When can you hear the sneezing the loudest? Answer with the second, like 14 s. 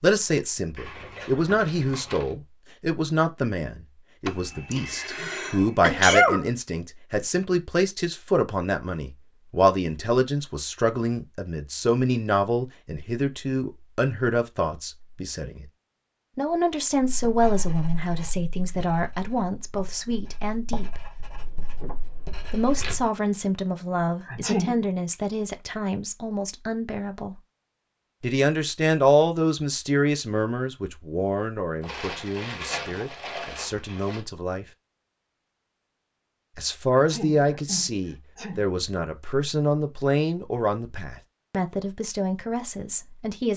6 s.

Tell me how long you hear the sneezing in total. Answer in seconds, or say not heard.
5 s.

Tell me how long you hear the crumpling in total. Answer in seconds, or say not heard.
6 s.